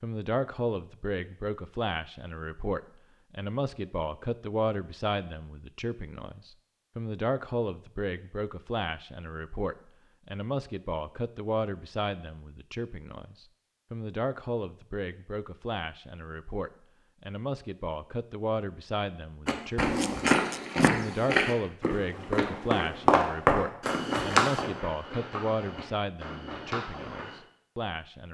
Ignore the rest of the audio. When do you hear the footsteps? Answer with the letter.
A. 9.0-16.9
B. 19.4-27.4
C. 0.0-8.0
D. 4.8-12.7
B.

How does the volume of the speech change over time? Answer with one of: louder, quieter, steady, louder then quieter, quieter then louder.
steady.